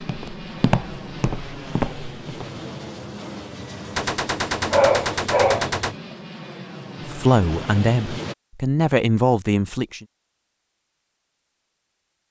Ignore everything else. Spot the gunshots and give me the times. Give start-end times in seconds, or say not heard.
4.0-6.0.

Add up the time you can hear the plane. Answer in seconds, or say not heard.
8 s.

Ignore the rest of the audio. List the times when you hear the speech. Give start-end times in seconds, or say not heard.
7.0-10.1.